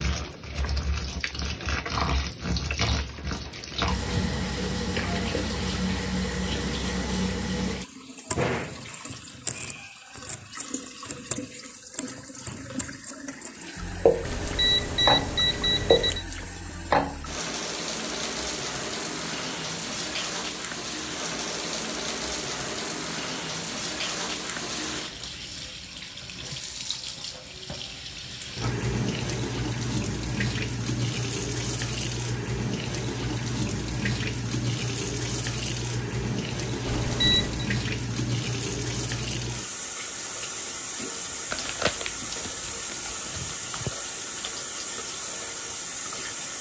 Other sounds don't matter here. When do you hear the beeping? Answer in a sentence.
The beeping can be heard from 14.2 to 16.2 s and from 36.9 to 37.6 s.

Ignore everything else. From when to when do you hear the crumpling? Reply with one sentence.
You can hear the crumpling from 41.5 to 44.0 s.